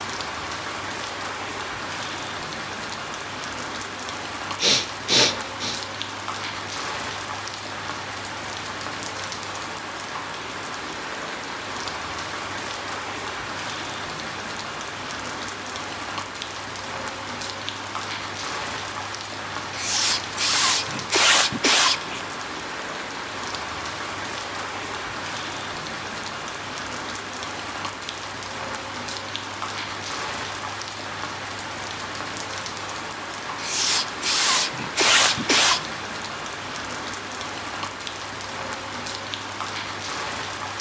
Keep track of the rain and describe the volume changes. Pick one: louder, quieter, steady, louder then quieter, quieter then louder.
steady.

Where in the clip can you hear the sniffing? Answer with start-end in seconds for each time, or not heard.
4.6-5.8, 19.8-22.2, 33.6-35.8.